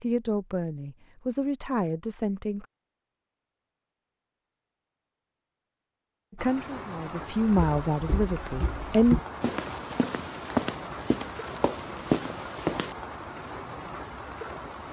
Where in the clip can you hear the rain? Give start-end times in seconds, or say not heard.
6.3-14.8.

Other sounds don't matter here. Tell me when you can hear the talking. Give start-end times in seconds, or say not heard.
0.0-2.6, 6.3-9.2.